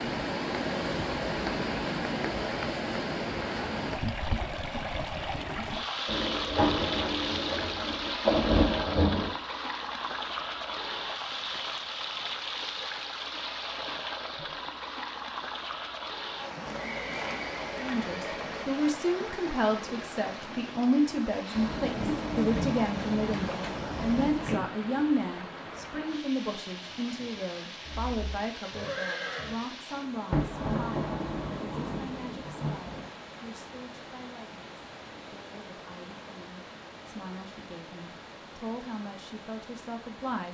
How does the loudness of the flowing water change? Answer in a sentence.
The volume of the flowing water goes down.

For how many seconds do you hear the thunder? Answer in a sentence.
The thunder can be heard for 9 seconds in total.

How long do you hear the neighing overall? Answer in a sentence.
You can hear the neighing for 4 seconds altogether.